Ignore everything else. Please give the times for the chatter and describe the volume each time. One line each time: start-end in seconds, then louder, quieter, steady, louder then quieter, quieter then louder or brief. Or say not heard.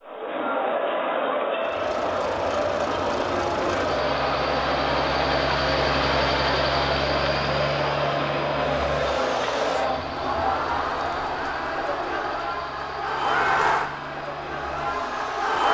0.1-15.6 steady.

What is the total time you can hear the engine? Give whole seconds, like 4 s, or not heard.
14 s.